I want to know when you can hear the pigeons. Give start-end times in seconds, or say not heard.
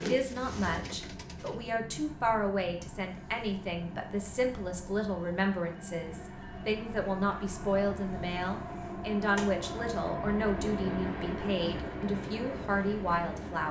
0.0-1.6.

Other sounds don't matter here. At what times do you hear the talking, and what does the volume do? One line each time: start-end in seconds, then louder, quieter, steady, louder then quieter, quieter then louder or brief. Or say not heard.
0.0-13.6 steady.